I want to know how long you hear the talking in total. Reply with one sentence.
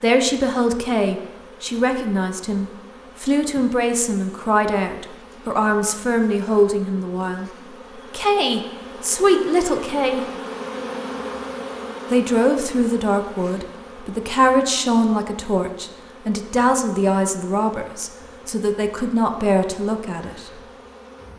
You can hear the talking for 19 seconds altogether.